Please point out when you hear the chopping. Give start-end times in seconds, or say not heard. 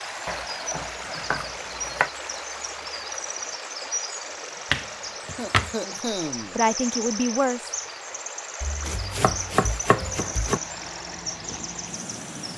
0.2-2.1, 4.7-5.8, 8.6-10.6.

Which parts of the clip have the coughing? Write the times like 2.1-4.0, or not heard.
5.3-6.8.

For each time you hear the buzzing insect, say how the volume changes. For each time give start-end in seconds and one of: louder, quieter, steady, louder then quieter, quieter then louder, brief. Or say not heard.
not heard.